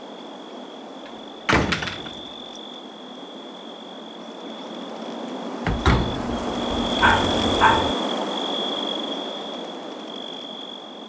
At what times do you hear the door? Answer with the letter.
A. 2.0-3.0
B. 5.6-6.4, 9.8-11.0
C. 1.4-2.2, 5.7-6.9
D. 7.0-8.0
C.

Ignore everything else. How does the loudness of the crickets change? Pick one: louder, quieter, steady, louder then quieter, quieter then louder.
louder then quieter.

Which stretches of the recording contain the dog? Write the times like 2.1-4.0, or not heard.
7.0-8.0.